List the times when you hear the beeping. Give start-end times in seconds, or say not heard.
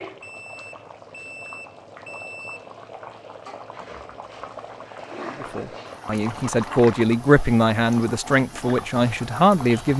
0.2-2.7.